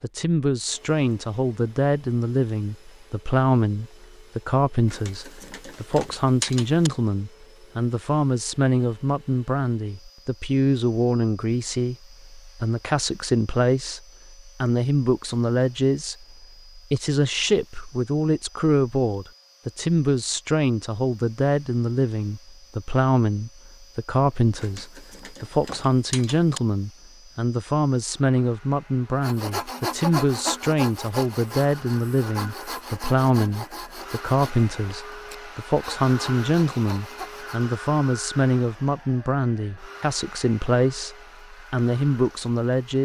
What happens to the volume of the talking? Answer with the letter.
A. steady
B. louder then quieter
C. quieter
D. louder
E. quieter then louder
A.